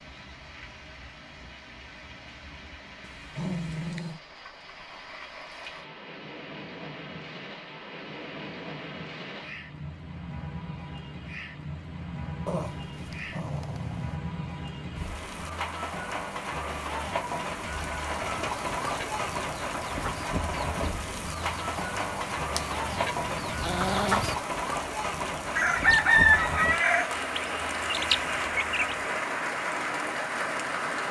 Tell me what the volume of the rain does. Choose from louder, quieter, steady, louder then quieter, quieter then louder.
louder.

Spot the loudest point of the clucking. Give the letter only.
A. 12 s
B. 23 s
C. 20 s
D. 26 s
D.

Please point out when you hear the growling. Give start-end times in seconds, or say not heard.
3.0-4.2, 12.4-14.2, 23.4-24.2.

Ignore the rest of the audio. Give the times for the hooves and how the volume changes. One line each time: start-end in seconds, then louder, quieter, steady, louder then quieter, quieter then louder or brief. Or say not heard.
not heard.